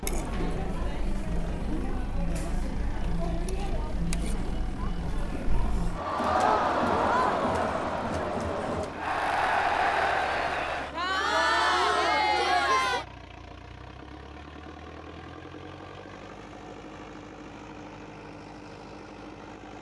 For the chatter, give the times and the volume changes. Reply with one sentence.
The chatter can be heard from 0.0 to 13.1 s, getting louder.